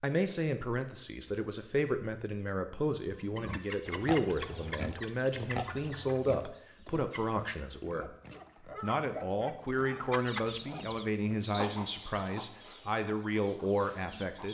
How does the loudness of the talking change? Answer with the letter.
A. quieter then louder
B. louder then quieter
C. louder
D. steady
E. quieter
D.